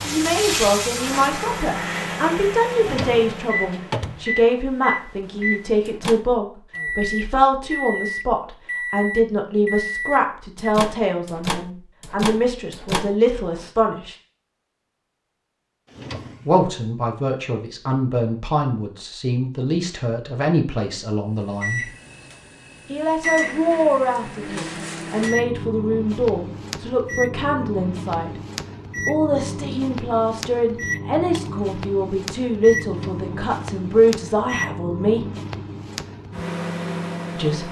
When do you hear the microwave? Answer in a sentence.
You can hear the microwave from 0.0 to 13.7 s and from 21.6 to 37.6 s.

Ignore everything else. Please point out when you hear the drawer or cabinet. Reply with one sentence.
The drawer or cabinet can be heard from 2.8 to 4.2 s, from 15.8 to 16.6 s and from 32.8 to 33.4 s.